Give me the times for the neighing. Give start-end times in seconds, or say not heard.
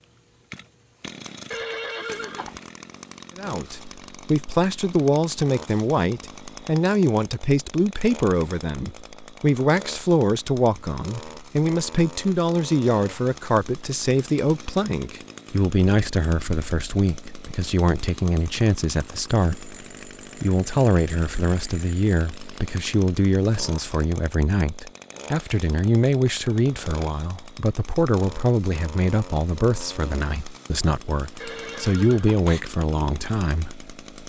1.5-2.6, 31.4-32.6.